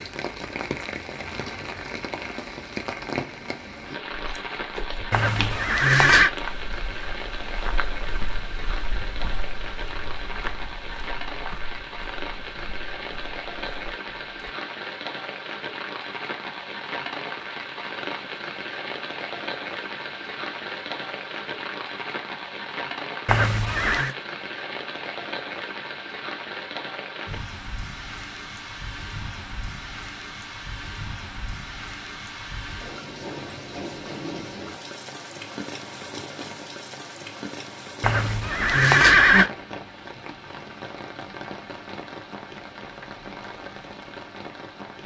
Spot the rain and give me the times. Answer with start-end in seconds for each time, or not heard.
0.0-45.0.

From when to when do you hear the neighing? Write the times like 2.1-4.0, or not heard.
5.1-6.3, 23.2-24.1, 38.0-39.5.